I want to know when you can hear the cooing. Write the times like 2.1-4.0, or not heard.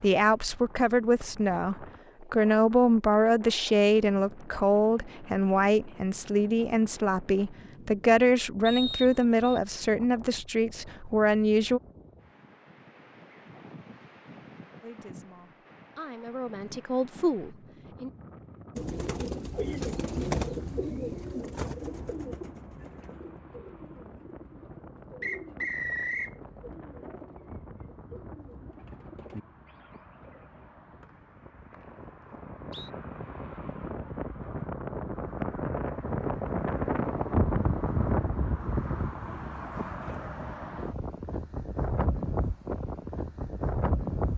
18.8-30.8.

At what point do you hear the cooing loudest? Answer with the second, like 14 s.
20 s.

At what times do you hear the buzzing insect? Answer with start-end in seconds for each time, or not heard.
not heard.